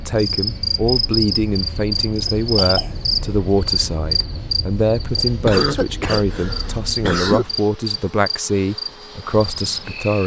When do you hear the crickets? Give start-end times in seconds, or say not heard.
0.0-10.2.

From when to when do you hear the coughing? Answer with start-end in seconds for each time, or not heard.
2.4-3.1, 5.5-7.5.